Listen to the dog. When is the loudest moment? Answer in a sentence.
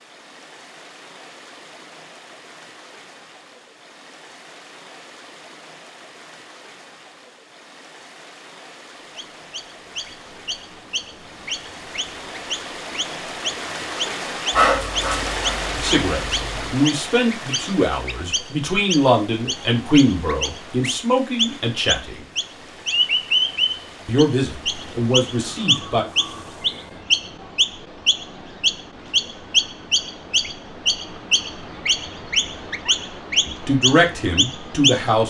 The loudest moment of the dog is at 15 seconds.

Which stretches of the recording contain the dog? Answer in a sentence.
The dog can be heard from 14.5 to 16.8 s.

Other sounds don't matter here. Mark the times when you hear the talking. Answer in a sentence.
You can hear the talking from 15.8 to 22.2 s, from 24.1 to 26.1 s and from 33.5 to 35.2 s.